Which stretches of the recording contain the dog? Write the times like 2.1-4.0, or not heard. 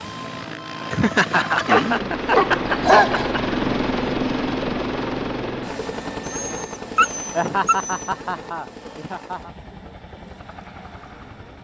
1.4-3.3, 6.2-8.0.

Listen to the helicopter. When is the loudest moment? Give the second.
4 s.